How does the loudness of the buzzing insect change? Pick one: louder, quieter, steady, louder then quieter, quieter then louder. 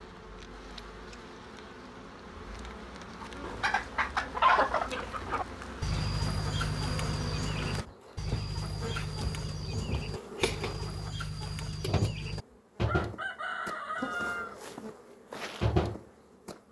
louder.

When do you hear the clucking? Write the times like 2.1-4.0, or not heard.
3.2-14.6.